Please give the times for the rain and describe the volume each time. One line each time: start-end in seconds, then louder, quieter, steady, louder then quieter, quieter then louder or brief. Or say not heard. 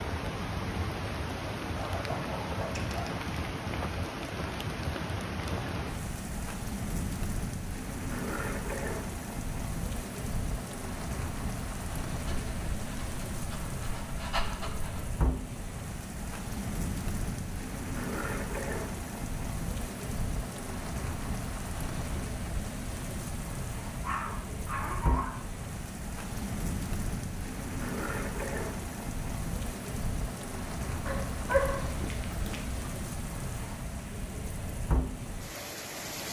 0.0-36.2 steady.